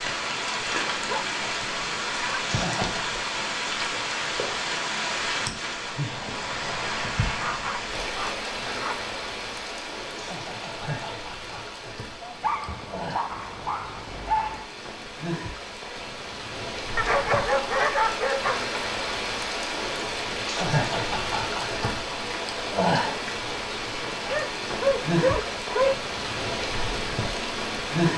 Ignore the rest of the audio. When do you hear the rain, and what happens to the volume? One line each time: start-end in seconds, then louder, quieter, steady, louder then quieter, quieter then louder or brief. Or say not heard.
0.0-28.1 quieter then louder.